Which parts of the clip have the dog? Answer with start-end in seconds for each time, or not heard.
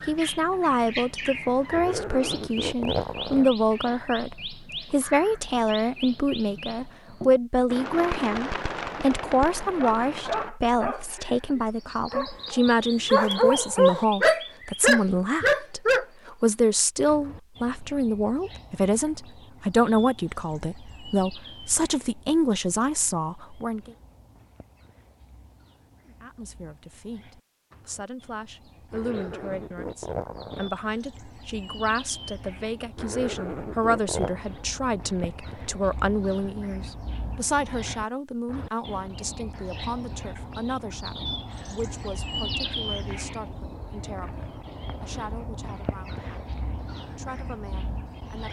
9.8-16.1.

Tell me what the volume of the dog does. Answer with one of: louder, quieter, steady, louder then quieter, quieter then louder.
louder.